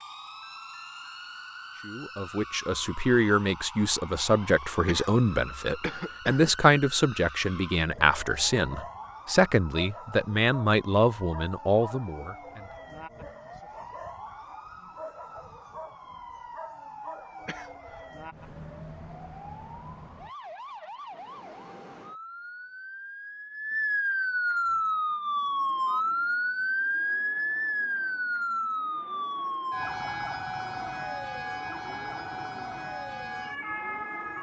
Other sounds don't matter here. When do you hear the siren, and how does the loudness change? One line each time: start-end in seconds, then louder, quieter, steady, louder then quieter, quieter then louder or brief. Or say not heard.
0.0-34.3 louder.